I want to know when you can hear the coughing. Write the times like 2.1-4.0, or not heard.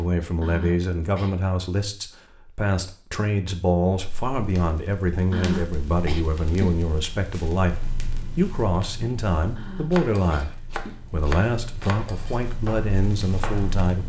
0.4-1.4, 5.3-6.8, 9.6-11.0.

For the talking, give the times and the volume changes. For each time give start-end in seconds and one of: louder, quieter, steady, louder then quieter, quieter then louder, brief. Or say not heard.
0.0-14.0 steady.